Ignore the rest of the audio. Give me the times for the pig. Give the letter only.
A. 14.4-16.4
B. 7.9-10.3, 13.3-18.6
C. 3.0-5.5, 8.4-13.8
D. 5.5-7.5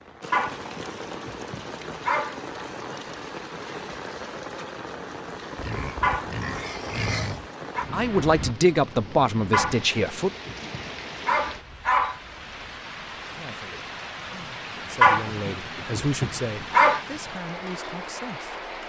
D.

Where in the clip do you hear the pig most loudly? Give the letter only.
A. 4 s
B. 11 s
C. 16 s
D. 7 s
D.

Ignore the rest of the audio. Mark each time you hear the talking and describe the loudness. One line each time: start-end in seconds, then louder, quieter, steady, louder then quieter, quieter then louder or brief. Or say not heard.
7.9-10.3 brief
13.3-18.6 louder then quieter.